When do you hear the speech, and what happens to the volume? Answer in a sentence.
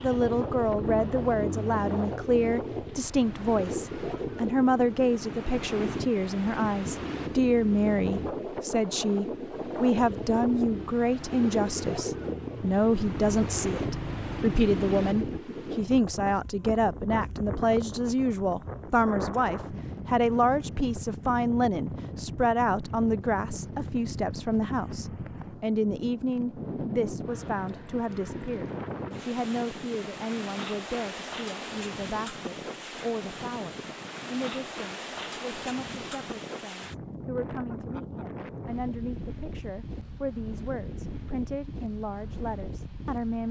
You can hear the speech from 0.0 to 43.4 s, getting quieter.